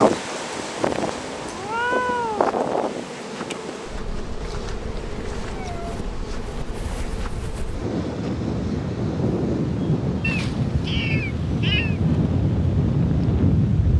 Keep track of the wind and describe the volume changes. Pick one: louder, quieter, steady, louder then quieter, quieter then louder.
quieter then louder.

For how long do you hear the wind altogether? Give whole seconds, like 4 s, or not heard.
14 s.